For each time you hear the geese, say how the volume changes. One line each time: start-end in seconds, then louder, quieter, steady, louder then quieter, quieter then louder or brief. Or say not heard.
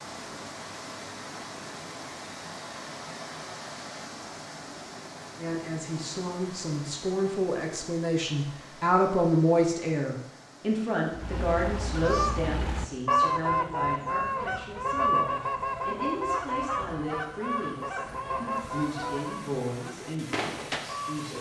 11.1-21.3 quieter.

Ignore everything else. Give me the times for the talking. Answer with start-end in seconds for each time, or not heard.
5.3-21.3.